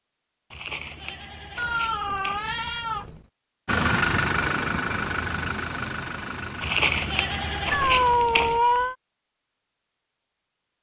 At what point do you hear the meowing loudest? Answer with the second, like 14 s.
8 s.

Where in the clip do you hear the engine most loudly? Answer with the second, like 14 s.
4 s.